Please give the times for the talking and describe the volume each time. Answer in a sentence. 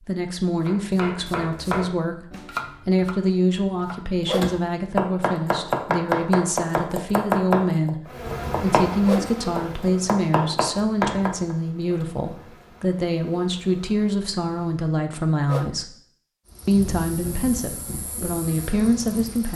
The talking can be heard from 0.1 to 15.9 s, at a steady volume; and briefly from 16.6 to 19.5 s.